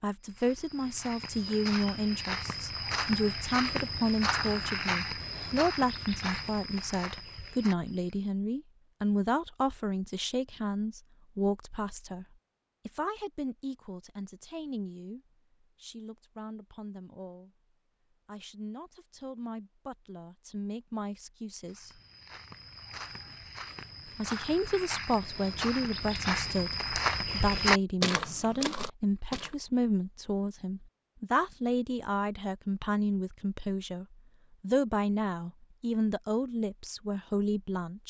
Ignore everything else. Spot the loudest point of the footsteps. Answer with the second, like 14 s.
28 s.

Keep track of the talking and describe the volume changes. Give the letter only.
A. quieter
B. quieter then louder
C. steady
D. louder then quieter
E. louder
B.